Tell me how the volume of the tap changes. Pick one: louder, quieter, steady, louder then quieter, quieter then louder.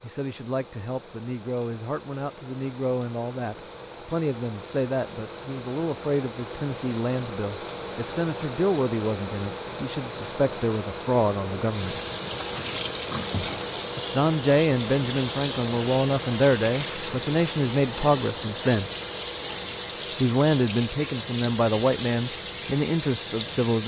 louder.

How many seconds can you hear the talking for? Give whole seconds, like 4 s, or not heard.
20 s.